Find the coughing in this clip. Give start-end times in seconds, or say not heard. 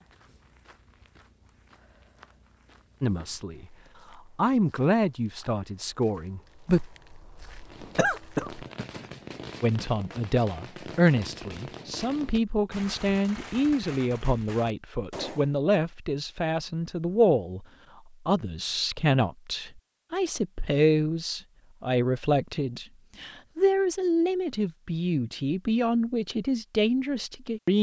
8.0-8.8.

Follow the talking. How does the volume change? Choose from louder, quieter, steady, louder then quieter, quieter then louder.
steady.